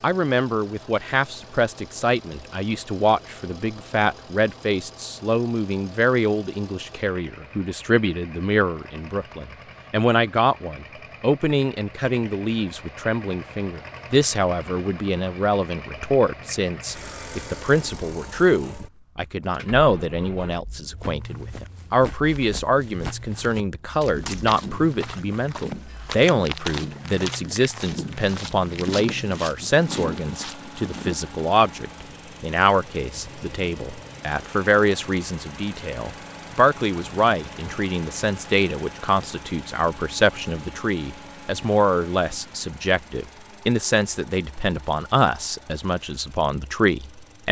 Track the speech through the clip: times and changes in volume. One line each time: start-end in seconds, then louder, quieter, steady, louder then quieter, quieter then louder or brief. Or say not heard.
0.0-47.4 steady.